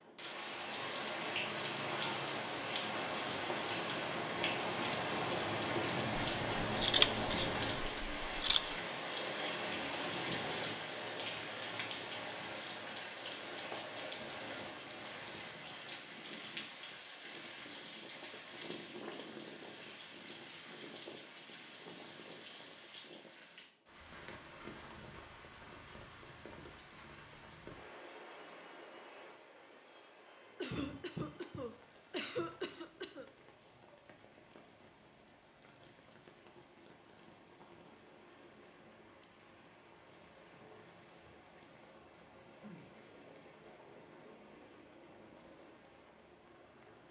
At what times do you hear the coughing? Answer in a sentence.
You can hear the coughing from 30.6 to 33.2 s.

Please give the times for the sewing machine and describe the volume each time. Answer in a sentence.
The sewing machine can't be heard in this clip.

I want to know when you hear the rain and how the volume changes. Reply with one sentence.
You can hear the rain from 0.0 to 47.0 s, getting quieter.